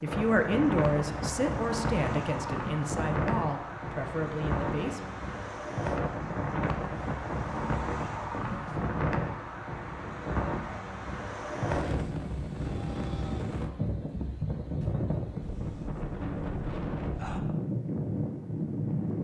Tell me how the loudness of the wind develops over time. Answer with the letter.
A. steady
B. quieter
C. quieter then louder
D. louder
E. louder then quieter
A.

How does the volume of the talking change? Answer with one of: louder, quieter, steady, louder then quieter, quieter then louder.
quieter.